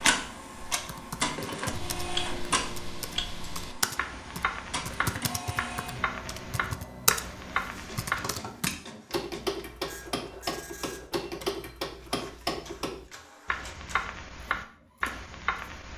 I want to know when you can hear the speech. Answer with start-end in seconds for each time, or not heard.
not heard.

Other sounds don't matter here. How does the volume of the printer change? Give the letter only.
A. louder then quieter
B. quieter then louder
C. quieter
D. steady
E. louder
C.